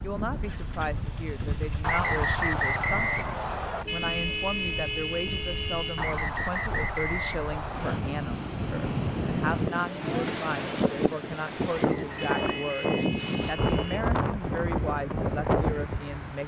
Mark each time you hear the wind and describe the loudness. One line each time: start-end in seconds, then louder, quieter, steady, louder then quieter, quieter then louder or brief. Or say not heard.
0.0-16.4 louder.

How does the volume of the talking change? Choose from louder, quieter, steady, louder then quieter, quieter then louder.
steady.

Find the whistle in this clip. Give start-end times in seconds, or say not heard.
1.8-3.9, 6.0-8.0, 11.8-13.1.